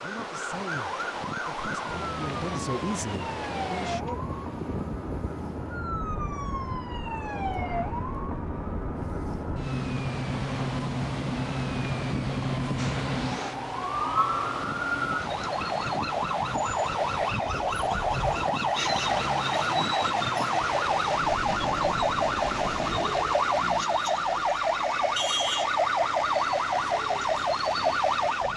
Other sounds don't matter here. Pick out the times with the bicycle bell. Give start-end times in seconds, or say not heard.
not heard.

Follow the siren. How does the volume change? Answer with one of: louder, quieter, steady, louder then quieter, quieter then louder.
louder.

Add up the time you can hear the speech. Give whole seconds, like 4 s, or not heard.
4 s.